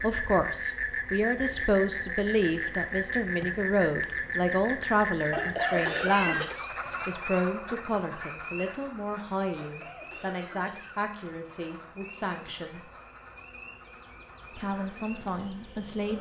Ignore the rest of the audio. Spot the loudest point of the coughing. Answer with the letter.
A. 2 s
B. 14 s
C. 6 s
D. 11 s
C.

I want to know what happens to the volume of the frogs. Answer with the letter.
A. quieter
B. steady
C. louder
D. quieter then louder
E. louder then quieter
A.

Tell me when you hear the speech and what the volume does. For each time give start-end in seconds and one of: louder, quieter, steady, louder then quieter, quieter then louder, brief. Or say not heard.
0.0-12.8 quieter
14.5-16.1 brief.